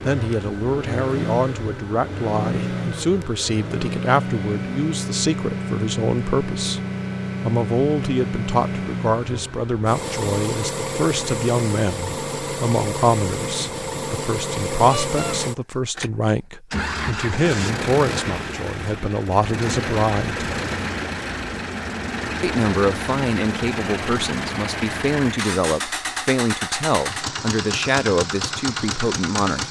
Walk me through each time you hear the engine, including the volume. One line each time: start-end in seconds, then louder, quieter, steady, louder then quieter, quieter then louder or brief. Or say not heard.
0.0-29.6 steady.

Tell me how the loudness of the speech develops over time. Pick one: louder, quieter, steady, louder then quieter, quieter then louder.
steady.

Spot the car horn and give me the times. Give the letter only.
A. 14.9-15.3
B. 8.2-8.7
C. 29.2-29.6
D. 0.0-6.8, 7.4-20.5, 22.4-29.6
A.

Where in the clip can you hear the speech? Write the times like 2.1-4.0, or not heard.
0.0-6.8, 7.4-20.5, 22.4-29.6.